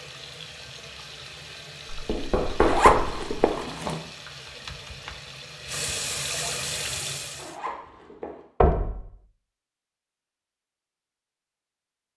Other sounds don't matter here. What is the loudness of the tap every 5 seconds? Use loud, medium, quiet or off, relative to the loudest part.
medium, loud, off.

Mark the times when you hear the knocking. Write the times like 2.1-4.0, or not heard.
1.9-3.3, 8.6-9.0.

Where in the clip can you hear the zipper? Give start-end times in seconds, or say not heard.
2.5-4.0, 7.3-8.4.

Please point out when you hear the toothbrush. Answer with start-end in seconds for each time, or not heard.
not heard.